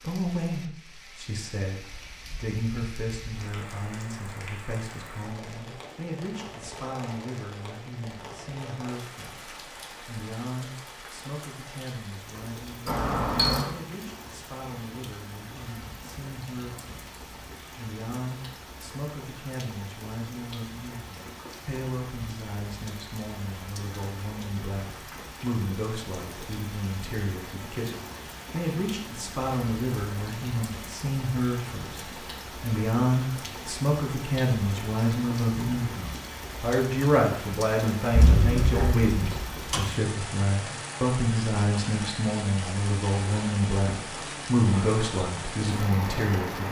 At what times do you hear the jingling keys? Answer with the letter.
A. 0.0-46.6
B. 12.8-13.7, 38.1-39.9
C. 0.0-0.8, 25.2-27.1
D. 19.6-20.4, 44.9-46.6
B.